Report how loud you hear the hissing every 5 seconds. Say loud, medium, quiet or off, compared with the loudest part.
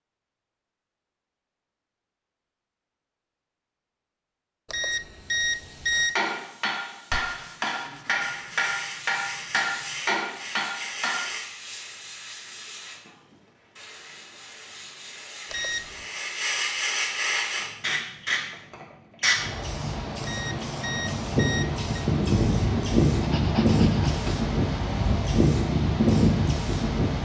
off, quiet, quiet, medium, loud, loud.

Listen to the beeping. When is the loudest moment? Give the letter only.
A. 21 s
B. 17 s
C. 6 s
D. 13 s
C.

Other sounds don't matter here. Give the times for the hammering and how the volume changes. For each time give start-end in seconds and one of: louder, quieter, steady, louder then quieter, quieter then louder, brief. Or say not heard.
5.9-11.3 steady.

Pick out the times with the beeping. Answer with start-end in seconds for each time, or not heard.
4.7-6.2, 15.5-16.1, 20.2-21.8.